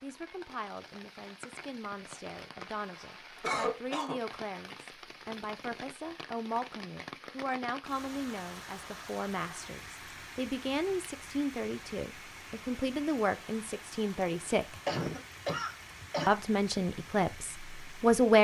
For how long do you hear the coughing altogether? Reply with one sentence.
The coughing can be heard for 3 seconds in total.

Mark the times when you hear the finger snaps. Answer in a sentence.
You can't hear the finger snaps here.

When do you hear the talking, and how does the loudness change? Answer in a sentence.
You can hear the talking from 0.0 to 14.8 s, getting louder; and briefly from 16.2 to 18.3 s.